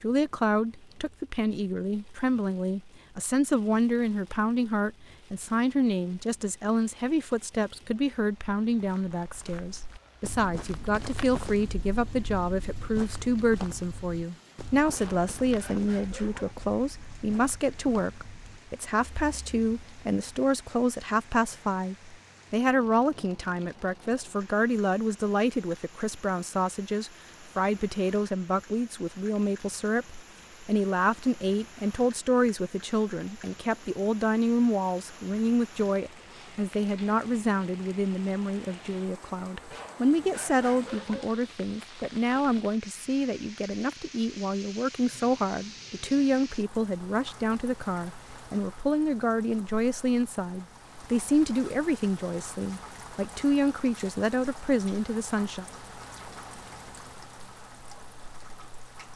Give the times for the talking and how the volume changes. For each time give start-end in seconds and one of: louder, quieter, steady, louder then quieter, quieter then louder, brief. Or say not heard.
0.0-55.6 steady.